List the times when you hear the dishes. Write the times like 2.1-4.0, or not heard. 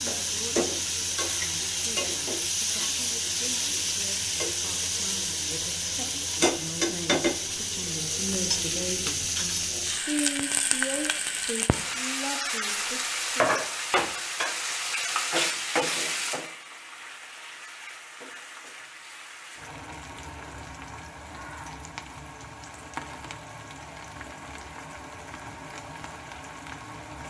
not heard.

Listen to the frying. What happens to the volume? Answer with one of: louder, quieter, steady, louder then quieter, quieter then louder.
quieter.